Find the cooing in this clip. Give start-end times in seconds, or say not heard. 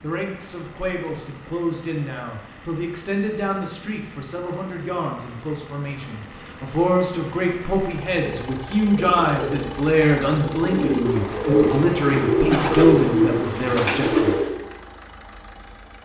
8.2-14.6.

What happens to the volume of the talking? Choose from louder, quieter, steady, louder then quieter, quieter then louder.
louder.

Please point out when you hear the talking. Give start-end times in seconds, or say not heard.
0.0-14.3.